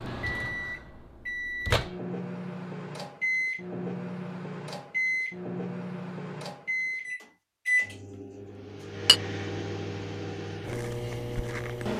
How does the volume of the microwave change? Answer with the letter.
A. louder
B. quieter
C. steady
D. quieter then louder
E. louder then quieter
C.